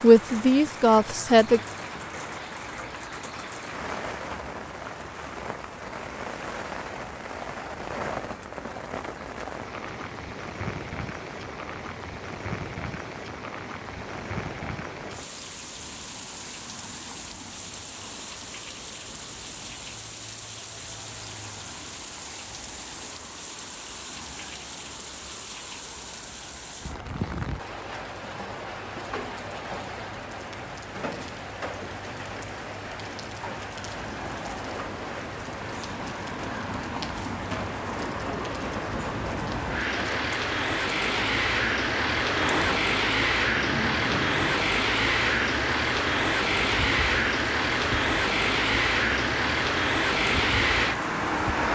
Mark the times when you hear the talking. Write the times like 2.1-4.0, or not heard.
0.0-1.6.